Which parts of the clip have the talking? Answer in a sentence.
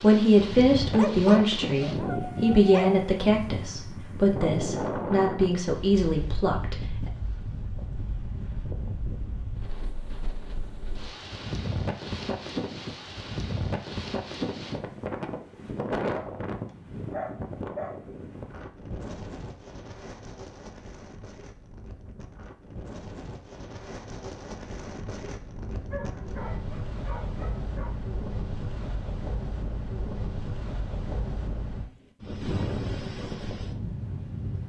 You can hear the talking from 0.0 to 7.1 s.